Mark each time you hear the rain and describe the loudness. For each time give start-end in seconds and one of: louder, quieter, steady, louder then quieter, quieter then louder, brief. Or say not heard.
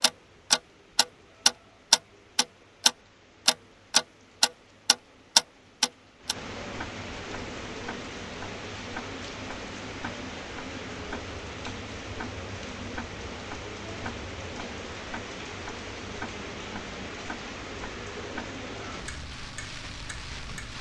0.0-20.7 louder.